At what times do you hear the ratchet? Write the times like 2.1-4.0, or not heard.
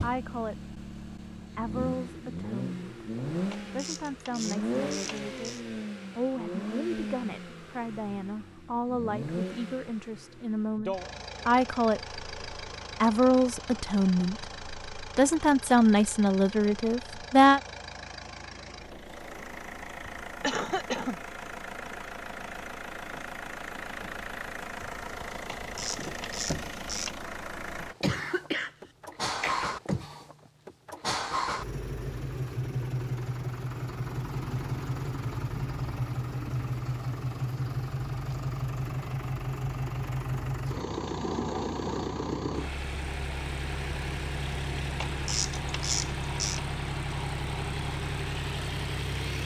3.5-5.6, 25.4-27.1, 45.0-46.6.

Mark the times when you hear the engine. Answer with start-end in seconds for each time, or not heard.
0.0-49.4.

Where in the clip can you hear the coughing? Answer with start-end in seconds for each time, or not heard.
20.4-21.2, 28.0-29.7.